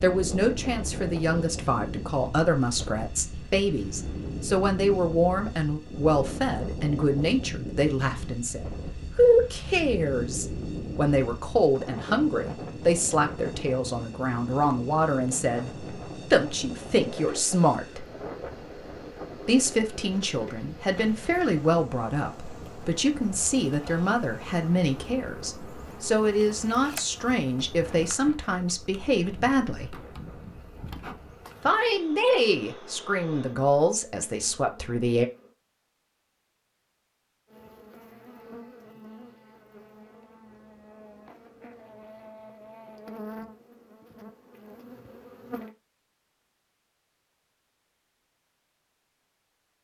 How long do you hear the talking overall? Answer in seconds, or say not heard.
32 s.